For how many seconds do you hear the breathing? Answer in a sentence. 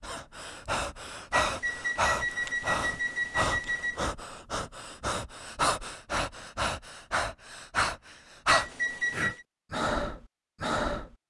You can hear the breathing for 11 seconds altogether.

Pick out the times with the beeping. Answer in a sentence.
You can hear the beeping from 1.3 to 4.1 s and from 8.4 to 9.4 s.